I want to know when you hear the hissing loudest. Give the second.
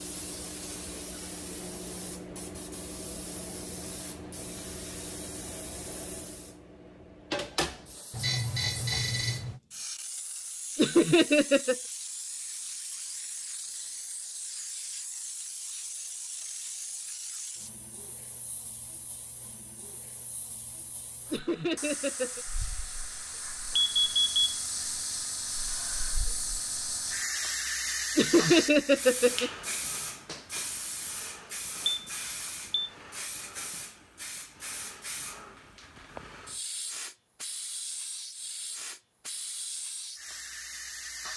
28 s.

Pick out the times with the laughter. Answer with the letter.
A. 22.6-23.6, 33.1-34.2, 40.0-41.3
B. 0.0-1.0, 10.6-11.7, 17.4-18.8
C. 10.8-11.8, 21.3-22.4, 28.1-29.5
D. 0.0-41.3
C.